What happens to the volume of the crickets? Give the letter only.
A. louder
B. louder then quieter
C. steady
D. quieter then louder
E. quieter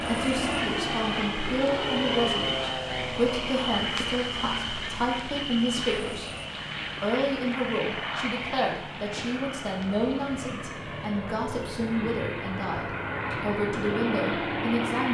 E.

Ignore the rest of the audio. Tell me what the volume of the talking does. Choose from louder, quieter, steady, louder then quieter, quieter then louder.
steady.